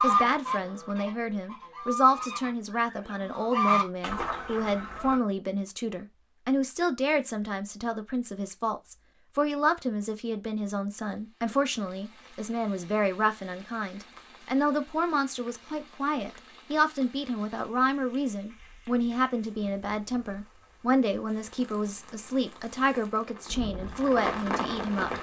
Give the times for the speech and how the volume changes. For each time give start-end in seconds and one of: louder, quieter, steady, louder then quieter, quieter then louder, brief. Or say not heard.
0.0-25.1 steady.